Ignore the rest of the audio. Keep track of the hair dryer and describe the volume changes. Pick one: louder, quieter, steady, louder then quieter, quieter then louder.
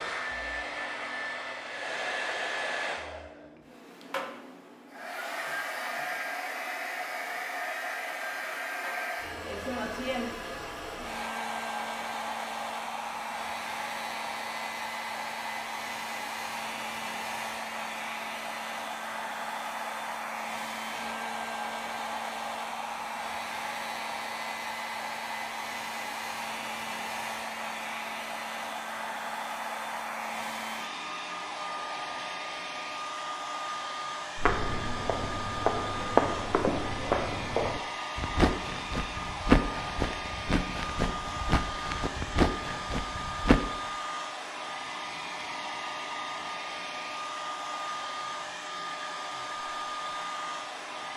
steady.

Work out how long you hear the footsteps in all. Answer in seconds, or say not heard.
9 s.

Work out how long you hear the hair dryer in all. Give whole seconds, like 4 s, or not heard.
51 s.